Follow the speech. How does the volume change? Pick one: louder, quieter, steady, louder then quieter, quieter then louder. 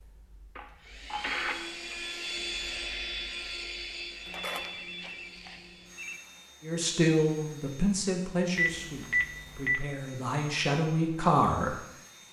quieter then louder.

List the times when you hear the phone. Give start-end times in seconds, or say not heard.
0.6-1.9, 4.2-6.2, 8.6-9.8.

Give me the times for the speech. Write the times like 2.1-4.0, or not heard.
6.6-11.8.